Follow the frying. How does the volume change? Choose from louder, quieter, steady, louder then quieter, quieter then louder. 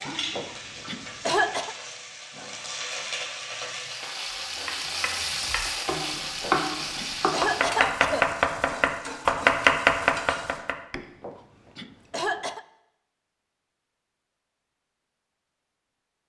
louder then quieter.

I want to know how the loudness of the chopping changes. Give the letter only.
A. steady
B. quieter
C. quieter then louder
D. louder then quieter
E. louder
E.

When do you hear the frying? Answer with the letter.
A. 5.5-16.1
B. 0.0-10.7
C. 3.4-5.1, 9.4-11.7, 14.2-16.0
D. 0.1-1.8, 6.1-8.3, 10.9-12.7
B.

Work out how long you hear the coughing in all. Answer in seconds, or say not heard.
6 s.